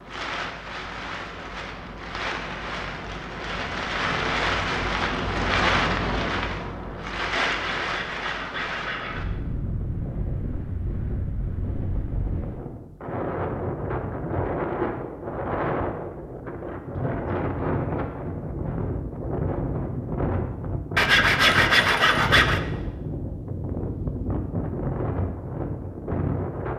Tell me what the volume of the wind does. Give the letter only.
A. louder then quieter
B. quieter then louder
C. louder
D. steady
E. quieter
D.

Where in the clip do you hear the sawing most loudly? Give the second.
22 s.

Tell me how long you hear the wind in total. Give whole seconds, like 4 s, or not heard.
27 s.